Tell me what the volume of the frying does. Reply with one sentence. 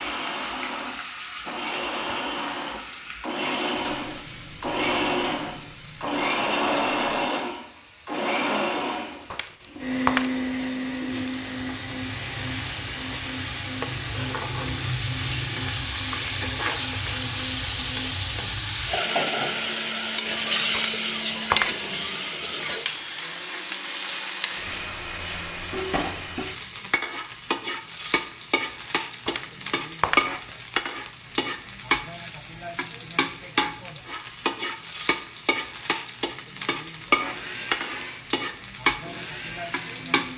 The loudness of the frying goes up.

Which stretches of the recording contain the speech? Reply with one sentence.
You can't hear the speech here.